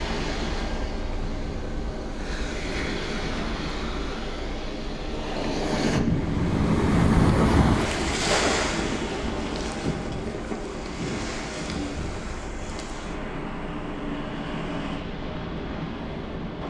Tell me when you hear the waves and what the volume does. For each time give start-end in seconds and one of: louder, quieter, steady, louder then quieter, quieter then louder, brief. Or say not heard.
0.0-16.6 louder then quieter.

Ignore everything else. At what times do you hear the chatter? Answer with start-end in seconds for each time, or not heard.
not heard.